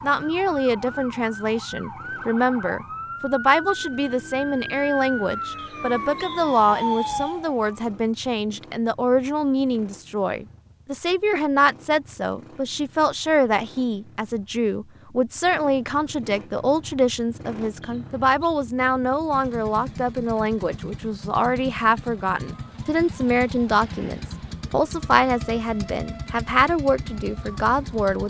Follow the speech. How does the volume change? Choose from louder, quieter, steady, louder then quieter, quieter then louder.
steady.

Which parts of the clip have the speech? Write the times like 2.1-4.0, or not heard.
0.0-28.2.